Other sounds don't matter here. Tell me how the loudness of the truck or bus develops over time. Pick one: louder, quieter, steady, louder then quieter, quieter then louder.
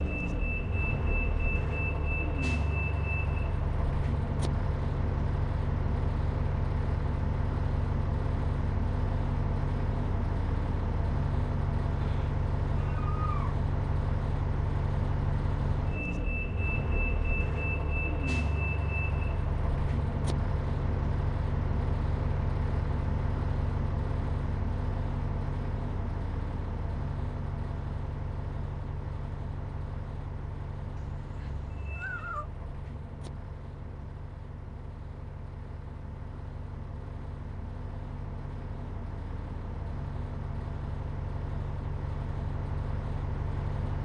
quieter.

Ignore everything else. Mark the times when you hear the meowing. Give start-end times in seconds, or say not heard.
12.0-13.6, 30.9-32.5.